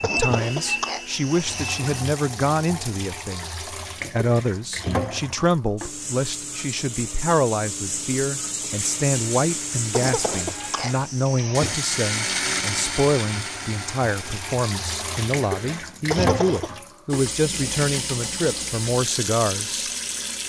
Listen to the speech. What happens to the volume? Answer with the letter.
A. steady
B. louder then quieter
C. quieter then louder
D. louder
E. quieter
A.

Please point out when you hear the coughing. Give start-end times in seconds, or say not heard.
0.0-1.9, 9.9-11.8, 16.1-16.8.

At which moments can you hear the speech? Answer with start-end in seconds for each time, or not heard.
0.0-19.9.